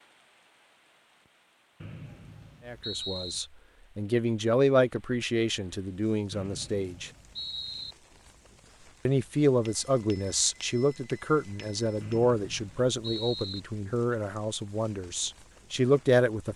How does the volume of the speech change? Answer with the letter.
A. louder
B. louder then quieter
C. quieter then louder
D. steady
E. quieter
D.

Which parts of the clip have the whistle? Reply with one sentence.
The whistle can be heard from 1.8 to 3.4 s, from 6.3 to 8.0 s and from 12.0 to 13.6 s.